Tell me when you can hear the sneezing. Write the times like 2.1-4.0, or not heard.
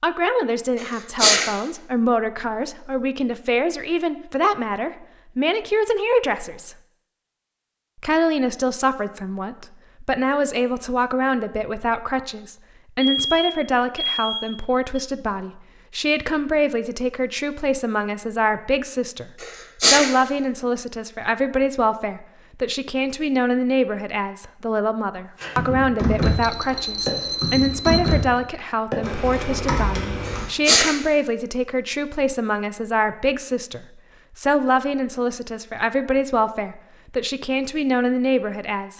0.8-1.5, 19.4-20.1, 30.2-30.9.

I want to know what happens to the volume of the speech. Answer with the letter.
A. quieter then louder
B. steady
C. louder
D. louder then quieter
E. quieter
B.